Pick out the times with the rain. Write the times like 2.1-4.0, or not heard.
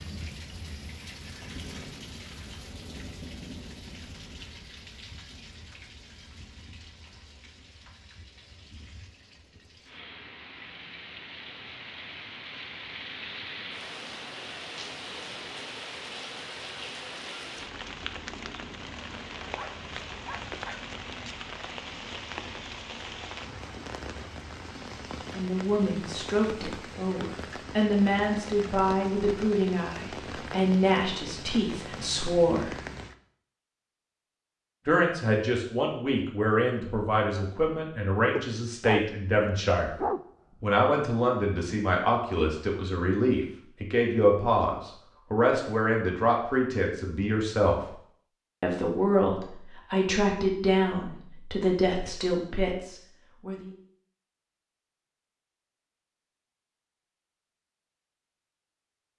0.0-33.1.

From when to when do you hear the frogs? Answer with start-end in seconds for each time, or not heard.
not heard.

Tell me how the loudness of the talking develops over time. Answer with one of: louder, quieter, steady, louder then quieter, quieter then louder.
steady.